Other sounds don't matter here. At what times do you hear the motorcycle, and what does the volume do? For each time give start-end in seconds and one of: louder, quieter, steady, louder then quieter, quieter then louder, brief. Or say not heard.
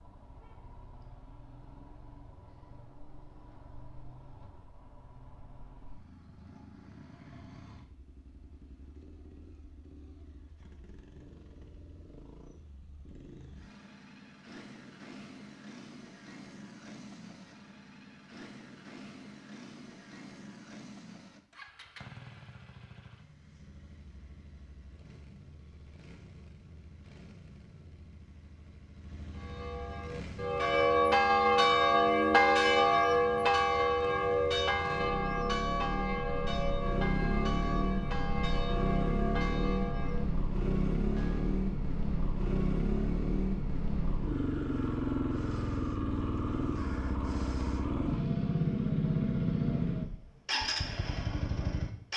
0.0-52.1 louder.